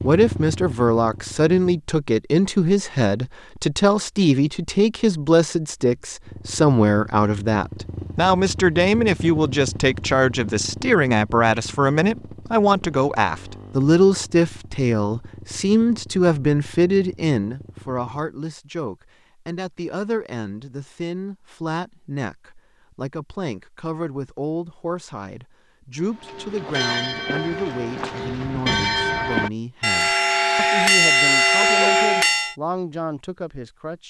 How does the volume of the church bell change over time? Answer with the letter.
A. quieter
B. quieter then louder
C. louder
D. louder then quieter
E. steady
C.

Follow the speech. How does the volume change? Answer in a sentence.
The loudness of the speech goes down.